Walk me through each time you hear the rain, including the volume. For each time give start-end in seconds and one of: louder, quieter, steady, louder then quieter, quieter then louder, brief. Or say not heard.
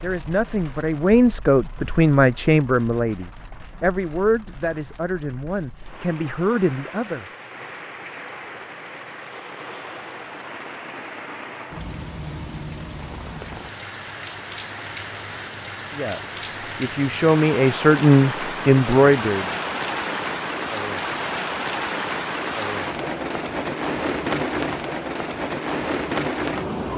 0.0-26.9 louder.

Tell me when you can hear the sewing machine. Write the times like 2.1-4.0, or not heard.
not heard.